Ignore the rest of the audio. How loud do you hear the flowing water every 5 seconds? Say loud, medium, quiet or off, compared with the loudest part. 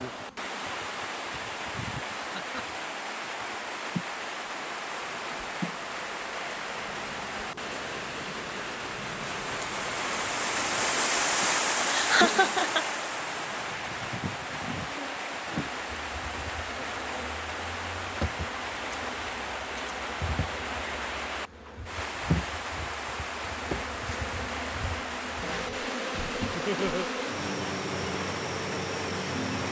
medium, medium, loud, medium, medium, medium.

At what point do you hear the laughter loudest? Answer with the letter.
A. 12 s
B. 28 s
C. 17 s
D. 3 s
A.